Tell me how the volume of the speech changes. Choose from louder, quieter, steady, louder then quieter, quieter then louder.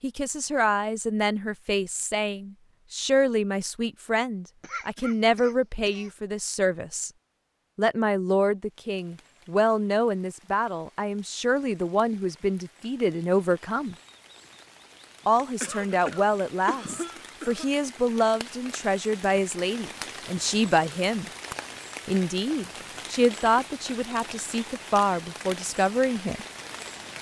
steady.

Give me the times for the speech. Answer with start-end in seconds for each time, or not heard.
0.0-7.1, 7.8-13.9, 15.2-21.3, 22.1-26.4.